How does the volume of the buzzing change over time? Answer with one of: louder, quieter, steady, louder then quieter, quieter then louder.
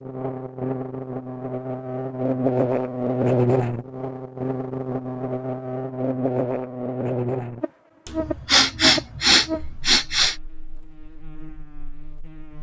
quieter.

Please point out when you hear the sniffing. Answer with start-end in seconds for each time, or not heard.
8.1-10.3.